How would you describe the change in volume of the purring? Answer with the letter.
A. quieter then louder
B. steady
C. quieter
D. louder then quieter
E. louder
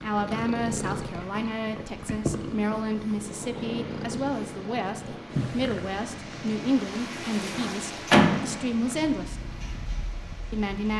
C.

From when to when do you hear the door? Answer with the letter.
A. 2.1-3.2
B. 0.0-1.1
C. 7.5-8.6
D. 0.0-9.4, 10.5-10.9
C.